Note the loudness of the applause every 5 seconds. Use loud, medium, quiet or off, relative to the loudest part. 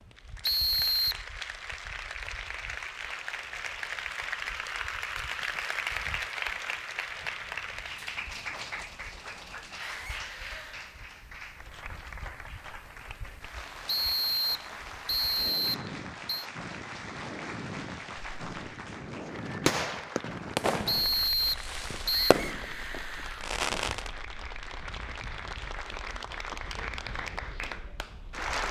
loud, loud, medium, medium, medium, loud.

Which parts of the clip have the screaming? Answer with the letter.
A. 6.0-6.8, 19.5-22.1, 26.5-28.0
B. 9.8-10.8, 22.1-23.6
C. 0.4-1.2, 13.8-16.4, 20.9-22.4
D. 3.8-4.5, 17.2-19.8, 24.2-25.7
B.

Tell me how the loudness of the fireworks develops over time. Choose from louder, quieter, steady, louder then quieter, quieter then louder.
quieter then louder.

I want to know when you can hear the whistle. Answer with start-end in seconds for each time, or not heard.
0.4-1.2, 13.8-16.4, 20.9-22.4.